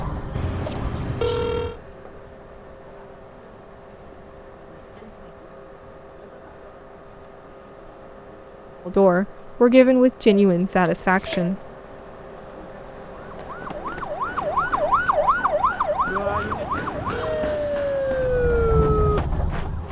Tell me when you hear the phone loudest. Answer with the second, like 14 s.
1 s.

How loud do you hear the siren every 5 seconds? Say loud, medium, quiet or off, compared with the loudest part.
off, off, loud, loud.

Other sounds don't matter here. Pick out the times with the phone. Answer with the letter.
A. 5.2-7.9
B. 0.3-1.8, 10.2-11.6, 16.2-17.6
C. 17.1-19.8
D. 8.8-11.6
B.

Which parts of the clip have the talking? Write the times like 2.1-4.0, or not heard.
8.8-11.6.